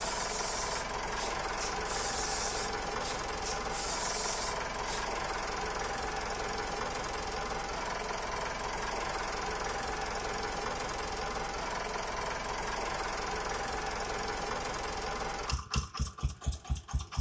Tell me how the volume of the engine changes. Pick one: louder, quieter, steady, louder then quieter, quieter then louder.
steady.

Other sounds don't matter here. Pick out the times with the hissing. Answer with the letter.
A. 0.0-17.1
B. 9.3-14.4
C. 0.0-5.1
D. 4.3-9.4
C.